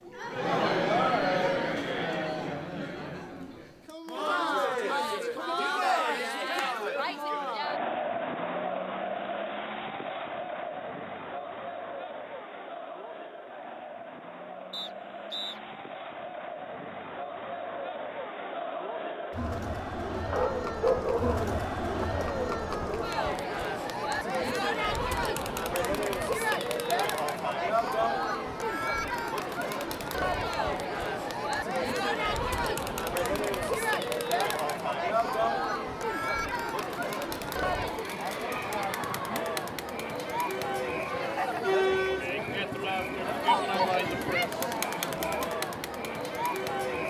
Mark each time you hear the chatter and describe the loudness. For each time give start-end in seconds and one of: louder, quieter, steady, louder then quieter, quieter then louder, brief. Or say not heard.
0.0-47.0 quieter then louder.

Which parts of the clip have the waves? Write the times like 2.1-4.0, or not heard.
not heard.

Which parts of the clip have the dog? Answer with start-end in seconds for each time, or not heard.
20.3-22.1.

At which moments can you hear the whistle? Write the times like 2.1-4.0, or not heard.
14.7-15.6.